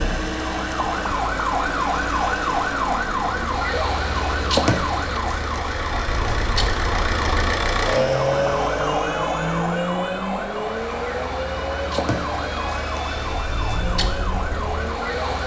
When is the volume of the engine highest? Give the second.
8 s.